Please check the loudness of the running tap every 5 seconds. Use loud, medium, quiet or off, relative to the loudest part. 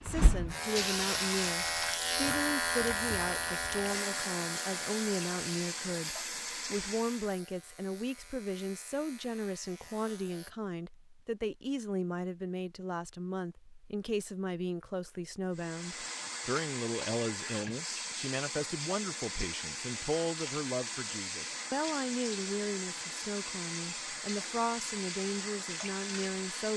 loud, loud, off, loud, loud, loud.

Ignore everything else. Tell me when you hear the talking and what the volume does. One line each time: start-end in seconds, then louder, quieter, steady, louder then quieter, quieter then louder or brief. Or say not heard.
0.0-26.7 steady.